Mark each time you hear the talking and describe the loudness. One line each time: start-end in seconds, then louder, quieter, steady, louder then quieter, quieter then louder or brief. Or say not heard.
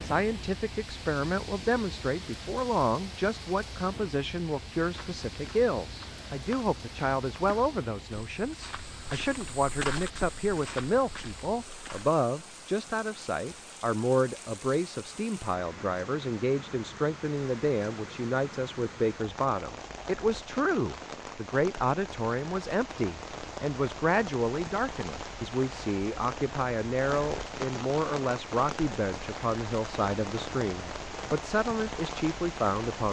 0.0-33.0 steady.